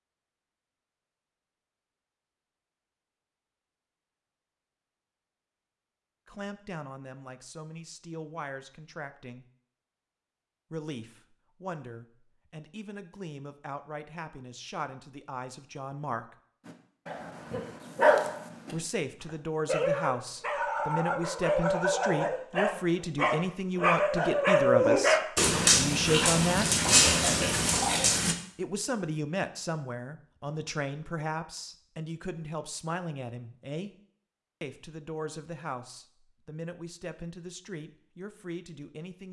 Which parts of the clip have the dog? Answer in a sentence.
You can hear the dog from 16.6 to 28.4 s.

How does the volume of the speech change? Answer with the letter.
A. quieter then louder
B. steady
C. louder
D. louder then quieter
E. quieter
D.